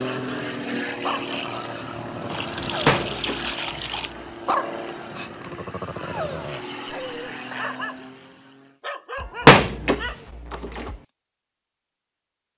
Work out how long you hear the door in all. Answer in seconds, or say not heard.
3 s.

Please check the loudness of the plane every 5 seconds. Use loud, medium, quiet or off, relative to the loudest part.
loud, medium, off.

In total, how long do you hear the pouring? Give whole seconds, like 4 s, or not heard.
2 s.